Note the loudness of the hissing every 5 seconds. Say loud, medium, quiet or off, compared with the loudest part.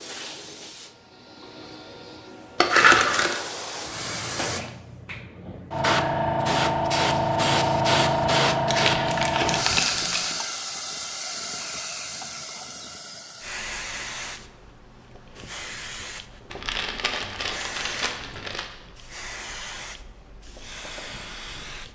quiet, loud, medium, quiet, quiet.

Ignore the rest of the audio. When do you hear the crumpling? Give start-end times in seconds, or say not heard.
2.5-3.4, 8.7-10.3, 16.5-18.6.